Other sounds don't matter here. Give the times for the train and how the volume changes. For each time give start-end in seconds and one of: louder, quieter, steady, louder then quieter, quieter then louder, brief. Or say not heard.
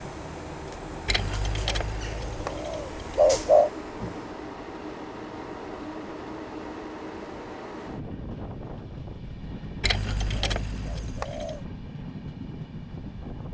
0.0-13.4 steady.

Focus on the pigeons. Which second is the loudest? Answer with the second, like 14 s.
3 s.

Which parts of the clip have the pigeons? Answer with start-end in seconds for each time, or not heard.
1.1-3.7, 9.8-11.6.